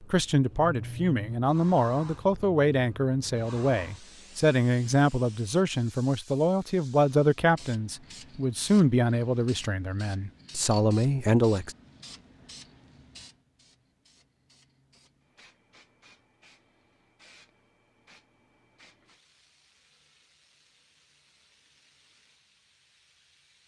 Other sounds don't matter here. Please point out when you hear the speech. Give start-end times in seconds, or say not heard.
0.0-11.8.